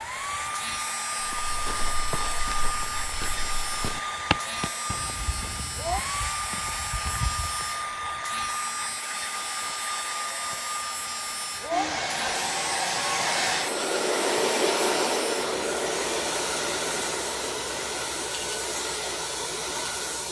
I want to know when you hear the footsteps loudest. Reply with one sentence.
The loudest moment of the footsteps is at 4 seconds.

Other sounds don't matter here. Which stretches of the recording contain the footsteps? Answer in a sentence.
You can hear the footsteps from 1.2 to 7.7 s.